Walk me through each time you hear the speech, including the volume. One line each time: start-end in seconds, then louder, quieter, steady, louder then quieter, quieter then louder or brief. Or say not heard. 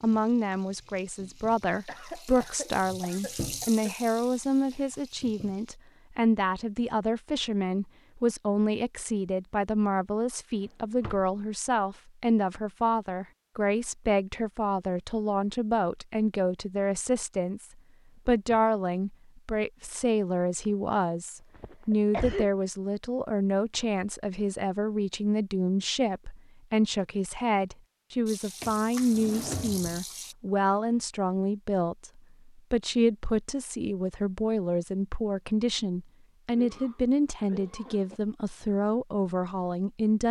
0.0-40.2 steady.